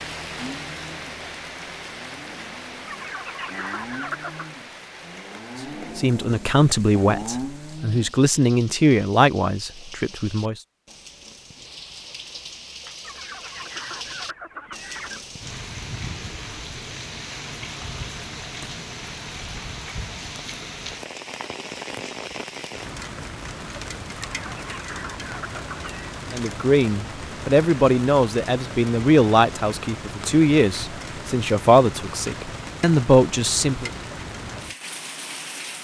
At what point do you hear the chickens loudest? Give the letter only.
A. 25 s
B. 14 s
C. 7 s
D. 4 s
D.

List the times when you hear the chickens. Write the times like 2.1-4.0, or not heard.
2.9-4.5, 13.0-15.2, 24.3-26.1.